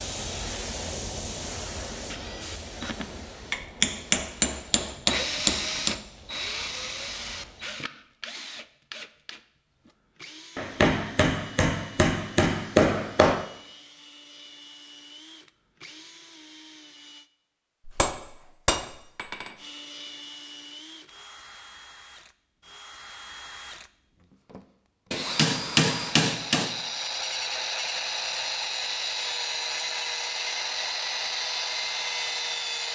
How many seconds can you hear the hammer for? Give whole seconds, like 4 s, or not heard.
9 s.